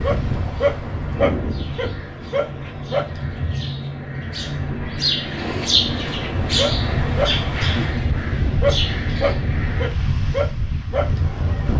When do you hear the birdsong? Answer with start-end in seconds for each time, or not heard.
0.0-9.9.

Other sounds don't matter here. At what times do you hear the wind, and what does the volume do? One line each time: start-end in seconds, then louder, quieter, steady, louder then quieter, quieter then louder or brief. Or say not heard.
0.0-11.7 quieter then louder.